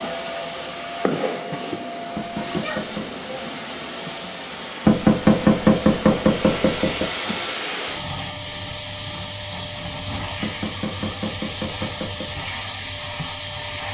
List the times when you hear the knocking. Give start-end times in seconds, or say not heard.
2.1-3.1, 4.8-7.0, 10.4-12.3.